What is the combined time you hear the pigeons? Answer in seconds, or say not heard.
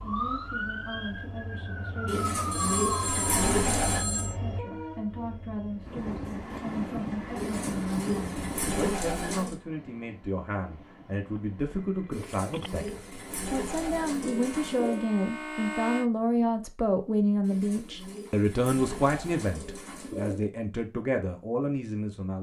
10 s.